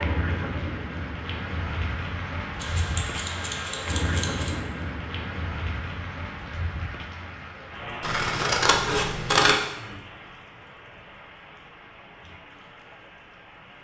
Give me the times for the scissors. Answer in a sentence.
The scissors can be heard from 2.6 to 4.6 s and from 8.0 to 9.6 s.